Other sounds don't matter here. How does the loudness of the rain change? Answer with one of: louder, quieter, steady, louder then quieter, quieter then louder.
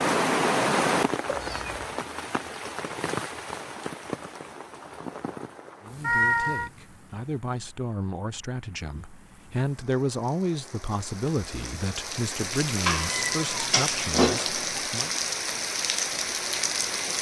quieter then louder.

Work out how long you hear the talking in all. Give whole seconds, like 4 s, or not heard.
9 s.